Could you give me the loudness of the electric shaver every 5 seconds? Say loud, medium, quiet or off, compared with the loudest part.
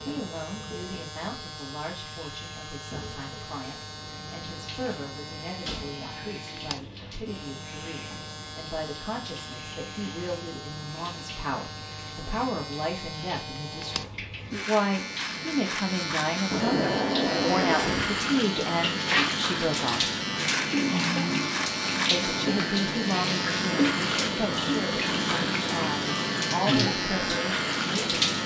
medium, medium, medium, loud, loud, loud.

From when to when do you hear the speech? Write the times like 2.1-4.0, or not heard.
0.0-20.1, 22.1-28.1.